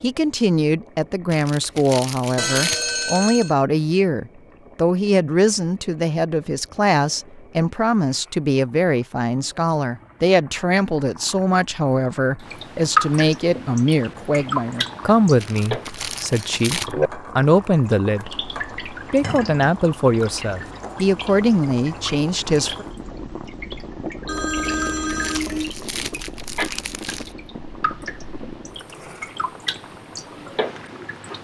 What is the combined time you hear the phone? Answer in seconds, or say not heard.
3 s.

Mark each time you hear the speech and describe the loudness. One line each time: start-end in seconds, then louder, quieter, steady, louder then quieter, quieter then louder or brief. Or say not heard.
0.0-22.9 steady.